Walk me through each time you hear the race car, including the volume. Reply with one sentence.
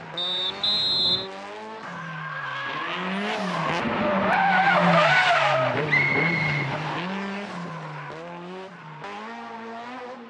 The race car can be heard from 0.0 to 10.2 s, getting louder then quieter.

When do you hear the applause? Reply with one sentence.
The applause can't be heard in this clip.